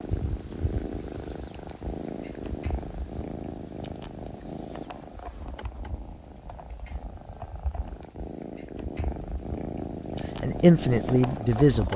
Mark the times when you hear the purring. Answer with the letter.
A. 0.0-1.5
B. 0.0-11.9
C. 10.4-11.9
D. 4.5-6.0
B.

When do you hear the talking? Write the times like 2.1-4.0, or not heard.
10.4-11.9.